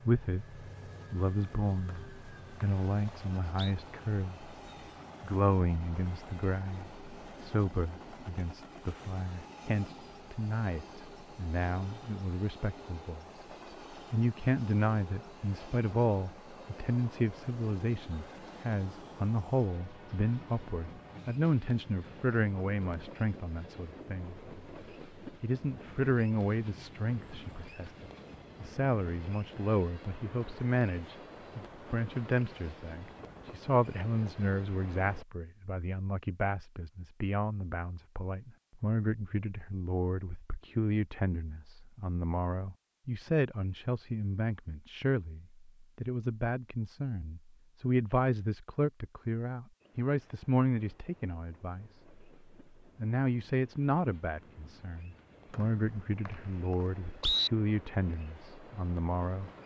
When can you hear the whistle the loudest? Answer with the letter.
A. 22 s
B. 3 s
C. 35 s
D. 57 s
D.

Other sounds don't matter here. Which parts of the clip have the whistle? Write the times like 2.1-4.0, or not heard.
1.9-3.7, 55.5-57.5.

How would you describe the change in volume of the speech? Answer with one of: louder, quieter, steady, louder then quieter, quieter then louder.
steady.